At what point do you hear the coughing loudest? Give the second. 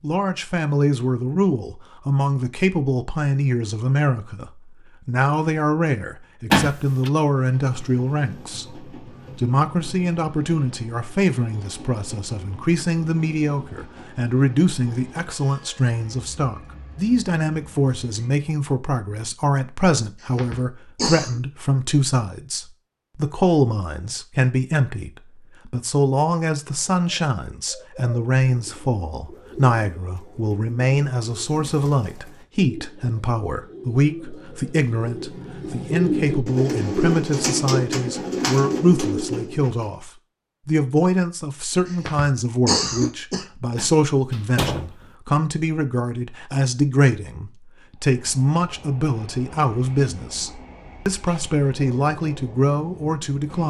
43 s.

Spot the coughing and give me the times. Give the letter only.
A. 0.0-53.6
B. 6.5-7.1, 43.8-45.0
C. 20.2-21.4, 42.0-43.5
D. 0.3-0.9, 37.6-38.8
C.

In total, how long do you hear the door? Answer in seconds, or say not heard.
2 s.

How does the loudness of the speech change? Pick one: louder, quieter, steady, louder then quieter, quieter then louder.
steady.